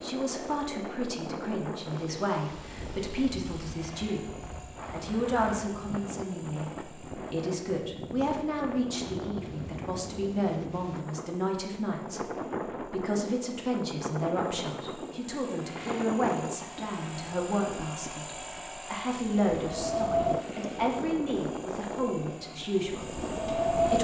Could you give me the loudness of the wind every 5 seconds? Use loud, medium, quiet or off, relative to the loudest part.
quiet, medium, medium, medium, loud.